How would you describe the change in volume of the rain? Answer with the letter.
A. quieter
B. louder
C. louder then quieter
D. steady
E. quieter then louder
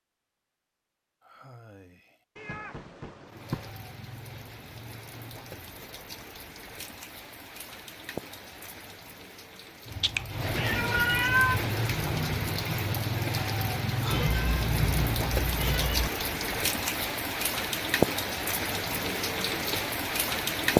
B.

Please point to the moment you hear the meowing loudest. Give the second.
11 s.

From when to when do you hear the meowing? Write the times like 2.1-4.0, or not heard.
2.4-3.7, 10.0-11.6, 14.1-16.1.